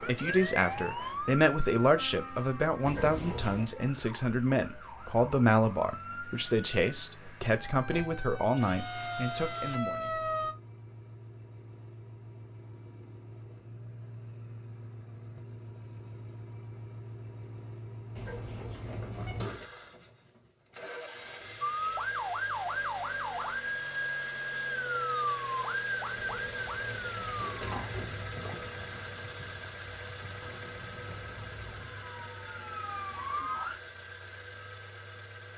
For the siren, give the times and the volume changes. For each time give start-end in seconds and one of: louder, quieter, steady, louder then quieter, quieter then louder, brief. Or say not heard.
0.0-10.6 quieter then louder
21.6-33.8 quieter then louder.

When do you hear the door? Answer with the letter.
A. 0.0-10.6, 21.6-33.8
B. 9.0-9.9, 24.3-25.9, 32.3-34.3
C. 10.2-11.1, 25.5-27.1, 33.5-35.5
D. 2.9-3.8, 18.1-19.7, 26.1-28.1
D.